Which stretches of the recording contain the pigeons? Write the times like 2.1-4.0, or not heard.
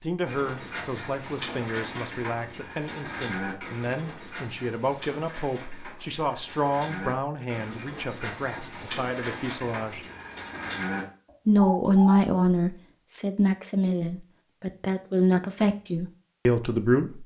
0.2-12.2.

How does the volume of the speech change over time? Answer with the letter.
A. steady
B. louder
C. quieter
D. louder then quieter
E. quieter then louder
B.